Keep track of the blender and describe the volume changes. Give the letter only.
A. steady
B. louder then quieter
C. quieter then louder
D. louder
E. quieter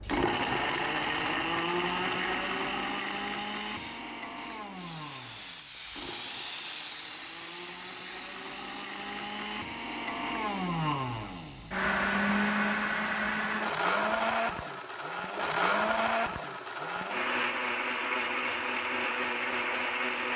C.